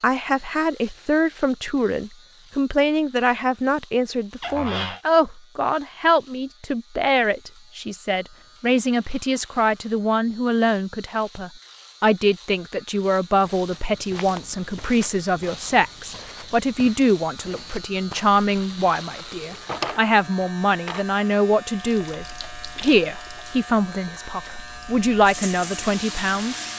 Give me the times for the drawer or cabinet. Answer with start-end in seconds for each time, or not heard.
4.4-5.0, 19.4-21.1.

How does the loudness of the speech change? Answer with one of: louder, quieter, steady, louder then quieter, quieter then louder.
steady.